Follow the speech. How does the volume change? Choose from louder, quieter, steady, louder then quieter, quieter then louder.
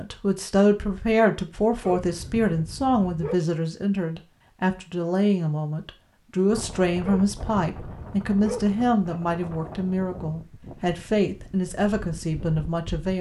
steady.